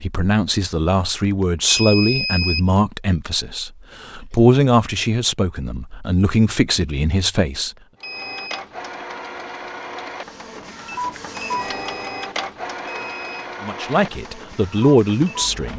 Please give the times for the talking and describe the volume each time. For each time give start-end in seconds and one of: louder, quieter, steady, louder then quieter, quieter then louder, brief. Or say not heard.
0.0-7.7 steady
13.6-15.7 brief.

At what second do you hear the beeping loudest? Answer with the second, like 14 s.
2 s.